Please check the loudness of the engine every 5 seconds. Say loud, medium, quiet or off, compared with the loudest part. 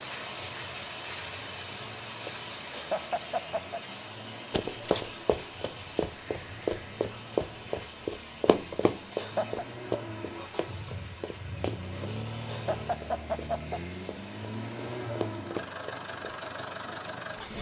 quiet, medium, loud, loud.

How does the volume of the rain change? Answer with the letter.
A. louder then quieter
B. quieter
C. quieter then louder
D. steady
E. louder
B.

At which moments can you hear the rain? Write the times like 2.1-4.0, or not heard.
0.0-14.4.